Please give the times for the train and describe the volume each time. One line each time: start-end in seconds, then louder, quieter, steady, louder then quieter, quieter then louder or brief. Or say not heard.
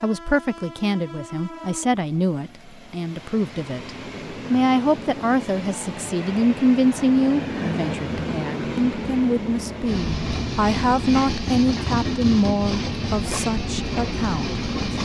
0.0-15.0 louder.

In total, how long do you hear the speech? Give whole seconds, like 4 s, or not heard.
15 s.